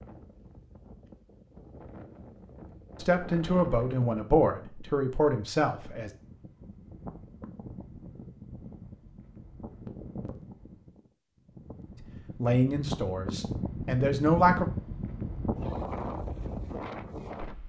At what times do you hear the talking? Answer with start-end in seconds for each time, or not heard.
3.0-6.1, 12.3-14.7.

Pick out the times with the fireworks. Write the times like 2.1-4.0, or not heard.
not heard.